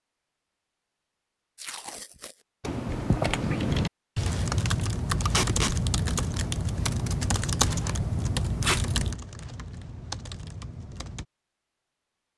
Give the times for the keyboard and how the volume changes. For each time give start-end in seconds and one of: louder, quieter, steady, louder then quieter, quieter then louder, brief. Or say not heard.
2.6-11.2 quieter.